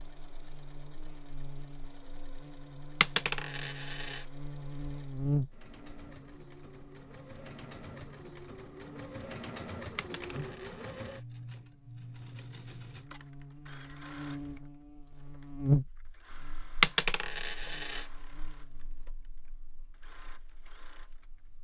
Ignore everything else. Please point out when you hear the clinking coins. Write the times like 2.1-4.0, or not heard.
3.0-4.2, 9.9-11.2, 16.8-18.1.